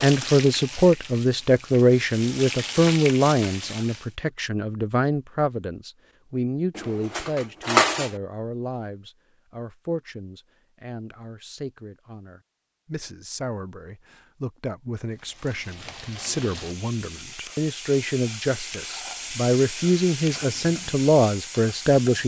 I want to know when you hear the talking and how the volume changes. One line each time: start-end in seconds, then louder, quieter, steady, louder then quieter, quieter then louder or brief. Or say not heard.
0.0-22.2 quieter then louder.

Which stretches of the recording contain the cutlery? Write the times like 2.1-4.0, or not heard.
6.8-8.1.